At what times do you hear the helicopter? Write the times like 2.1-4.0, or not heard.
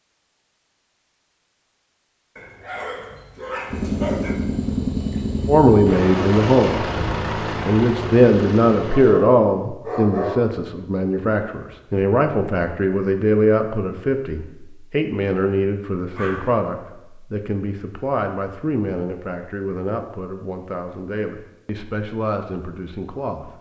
3.6-9.2.